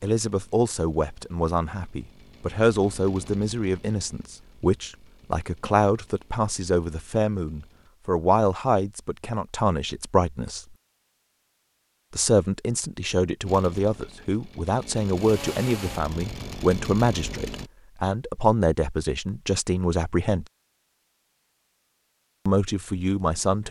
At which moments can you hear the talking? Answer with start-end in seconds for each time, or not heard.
0.0-10.6, 12.1-20.4, 22.4-23.6.